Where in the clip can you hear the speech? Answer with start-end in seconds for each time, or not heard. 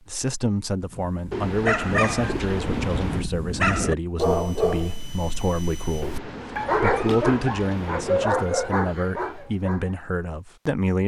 0.1-11.0.